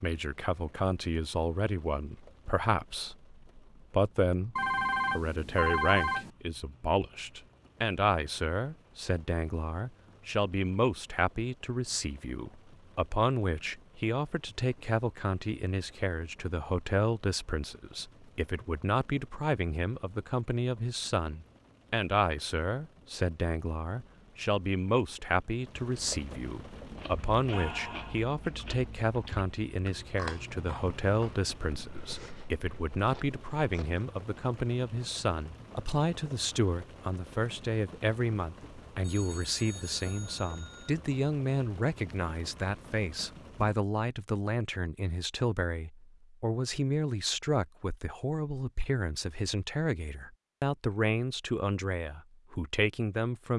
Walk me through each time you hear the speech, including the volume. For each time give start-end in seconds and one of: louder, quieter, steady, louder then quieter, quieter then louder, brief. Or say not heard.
0.0-53.5 steady.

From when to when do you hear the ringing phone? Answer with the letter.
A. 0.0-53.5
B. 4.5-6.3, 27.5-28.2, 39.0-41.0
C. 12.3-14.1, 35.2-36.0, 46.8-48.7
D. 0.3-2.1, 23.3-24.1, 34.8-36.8
B.